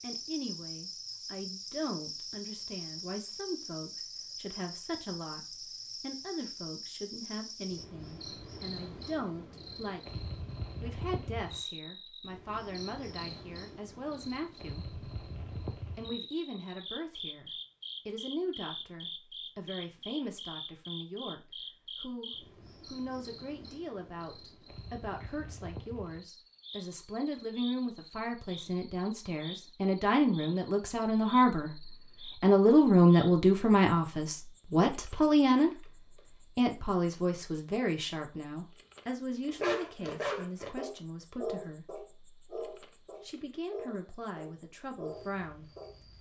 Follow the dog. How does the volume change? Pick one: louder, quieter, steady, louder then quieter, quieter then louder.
quieter.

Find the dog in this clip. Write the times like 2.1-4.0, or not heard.
39.5-46.0.